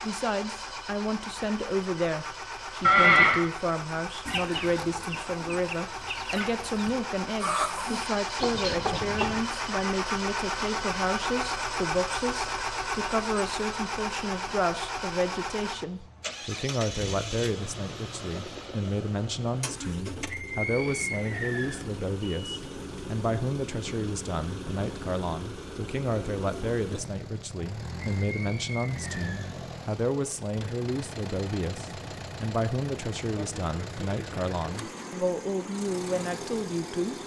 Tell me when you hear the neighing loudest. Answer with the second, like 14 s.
3 s.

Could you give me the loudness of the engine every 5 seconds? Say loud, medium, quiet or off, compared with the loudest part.
medium, loud, loud, medium, medium, medium, medium, medium.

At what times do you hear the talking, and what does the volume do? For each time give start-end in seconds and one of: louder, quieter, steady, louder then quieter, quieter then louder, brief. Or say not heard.
0.0-37.1 steady.